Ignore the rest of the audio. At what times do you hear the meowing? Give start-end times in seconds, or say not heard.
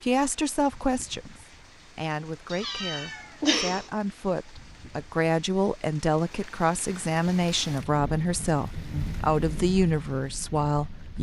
2.5-3.9.